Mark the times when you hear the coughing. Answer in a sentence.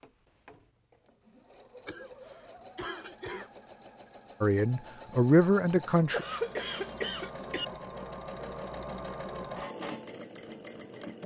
You can hear the coughing from 1.9 to 3.5 s and from 6.1 to 7.7 s.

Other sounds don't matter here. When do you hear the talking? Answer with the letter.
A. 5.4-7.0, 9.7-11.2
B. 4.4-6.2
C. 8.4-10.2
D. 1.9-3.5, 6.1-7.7
B.